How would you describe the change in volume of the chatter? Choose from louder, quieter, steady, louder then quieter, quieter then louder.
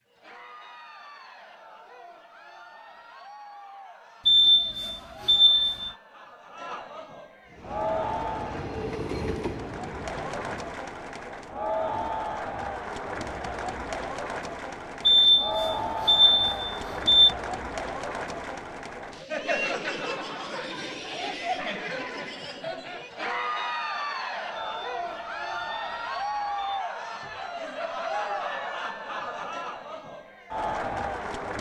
louder.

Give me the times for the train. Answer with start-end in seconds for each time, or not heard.
7.5-10.8.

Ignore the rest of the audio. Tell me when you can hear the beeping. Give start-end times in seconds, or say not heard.
4.2-5.9, 15.1-17.4, 24.6-26.9.